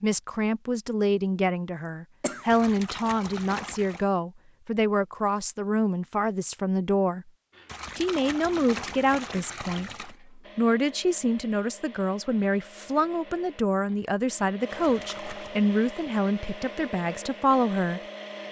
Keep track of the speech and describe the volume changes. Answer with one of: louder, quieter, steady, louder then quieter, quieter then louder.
steady.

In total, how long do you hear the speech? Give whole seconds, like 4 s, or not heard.
17 s.